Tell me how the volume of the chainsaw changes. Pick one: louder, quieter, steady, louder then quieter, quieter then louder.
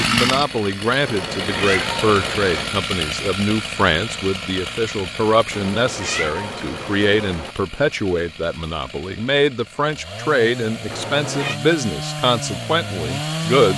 quieter then louder.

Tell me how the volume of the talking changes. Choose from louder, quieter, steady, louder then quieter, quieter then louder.
steady.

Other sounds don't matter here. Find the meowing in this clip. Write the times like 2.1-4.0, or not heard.
1.1-2.8, 5.5-7.5, 10.9-11.6.